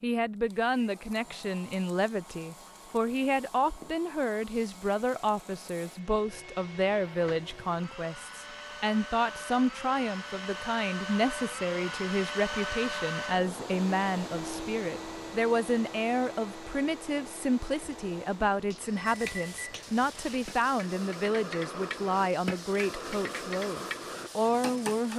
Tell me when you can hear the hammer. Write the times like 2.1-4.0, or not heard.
18.7-25.1.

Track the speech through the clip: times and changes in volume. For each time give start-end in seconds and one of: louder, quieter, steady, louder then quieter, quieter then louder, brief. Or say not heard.
0.0-25.1 steady.